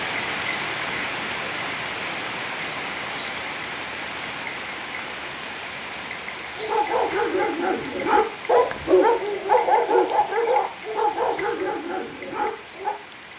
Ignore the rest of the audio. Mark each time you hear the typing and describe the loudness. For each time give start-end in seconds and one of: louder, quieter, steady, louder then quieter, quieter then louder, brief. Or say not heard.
not heard.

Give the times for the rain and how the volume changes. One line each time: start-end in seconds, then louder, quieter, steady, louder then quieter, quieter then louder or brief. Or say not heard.
0.0-13.3 quieter.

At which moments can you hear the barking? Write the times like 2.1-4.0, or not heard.
6.5-12.9.